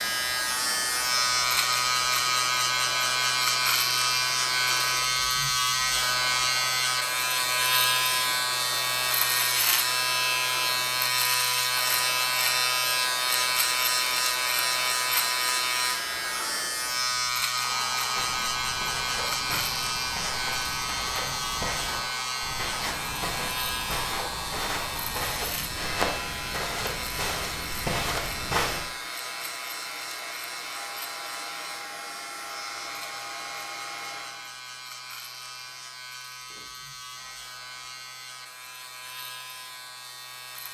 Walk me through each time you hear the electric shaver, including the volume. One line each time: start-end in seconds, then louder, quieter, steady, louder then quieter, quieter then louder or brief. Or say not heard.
0.0-40.7 quieter.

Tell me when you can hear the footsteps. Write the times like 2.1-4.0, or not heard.
18.1-28.8.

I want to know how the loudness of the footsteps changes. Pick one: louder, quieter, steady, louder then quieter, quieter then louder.
louder.